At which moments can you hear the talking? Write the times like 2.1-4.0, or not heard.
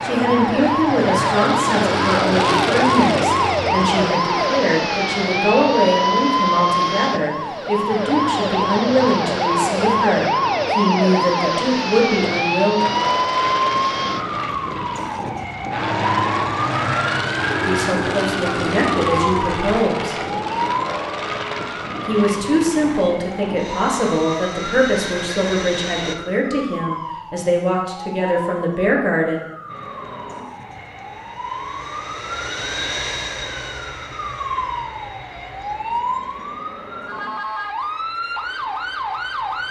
0.0-12.8, 17.6-20.1, 22.1-29.4.